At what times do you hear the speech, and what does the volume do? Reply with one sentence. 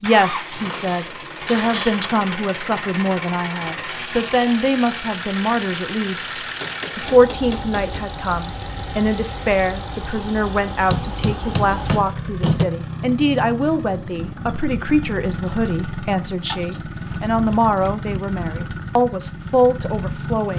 The speech can be heard from 0.0 to 20.5 s, at a steady volume.